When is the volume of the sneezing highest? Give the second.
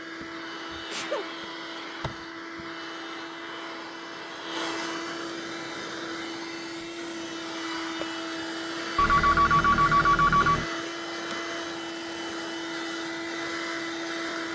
1 s.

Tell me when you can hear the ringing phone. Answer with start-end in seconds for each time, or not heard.
8.9-10.7.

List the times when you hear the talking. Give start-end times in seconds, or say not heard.
not heard.